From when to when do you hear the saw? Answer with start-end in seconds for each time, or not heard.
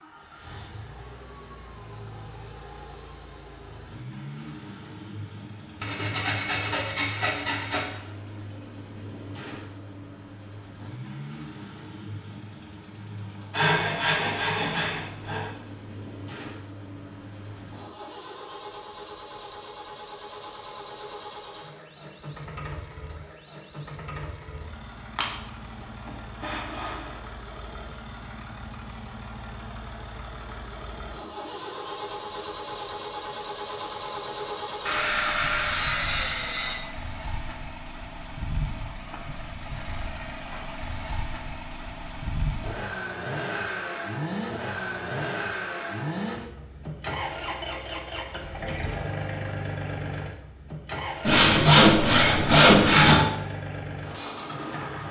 5.8-7.8, 13.5-15.5, 25.1-27.1, 34.9-36.8, 51.2-53.2.